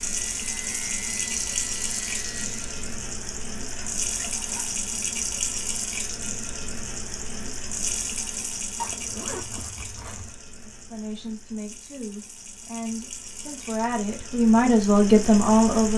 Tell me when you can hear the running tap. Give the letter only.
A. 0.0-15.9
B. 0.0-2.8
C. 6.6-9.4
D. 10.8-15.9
A.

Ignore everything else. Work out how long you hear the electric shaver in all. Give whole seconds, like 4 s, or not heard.
3 s.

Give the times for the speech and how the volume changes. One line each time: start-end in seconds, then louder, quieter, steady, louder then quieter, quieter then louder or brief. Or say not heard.
10.8-15.9 louder.